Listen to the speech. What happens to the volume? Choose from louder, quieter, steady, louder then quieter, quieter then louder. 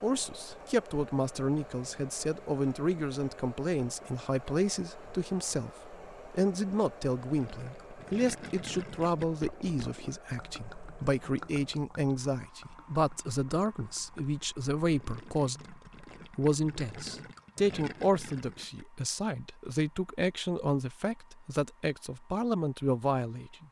steady.